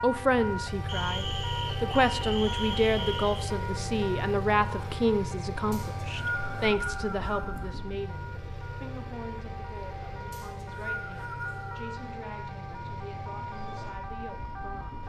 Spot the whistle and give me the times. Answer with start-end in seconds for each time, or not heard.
0.8-3.5, 5.7-7.6, 10.3-11.8.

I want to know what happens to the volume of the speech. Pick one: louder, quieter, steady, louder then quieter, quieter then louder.
quieter.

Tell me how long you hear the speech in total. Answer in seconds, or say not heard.
15 s.